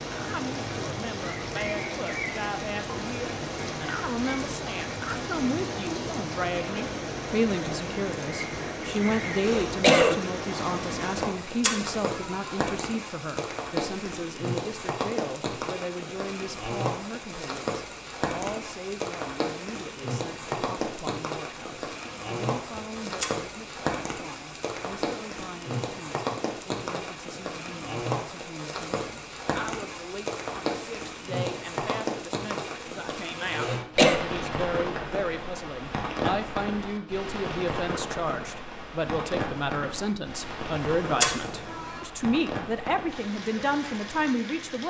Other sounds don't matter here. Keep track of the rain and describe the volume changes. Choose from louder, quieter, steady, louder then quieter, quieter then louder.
steady.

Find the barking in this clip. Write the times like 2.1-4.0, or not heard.
not heard.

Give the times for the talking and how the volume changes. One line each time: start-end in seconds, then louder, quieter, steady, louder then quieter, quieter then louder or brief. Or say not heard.
0.1-44.8 quieter then louder.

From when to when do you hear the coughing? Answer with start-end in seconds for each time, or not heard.
8.9-10.2, 33.1-34.2.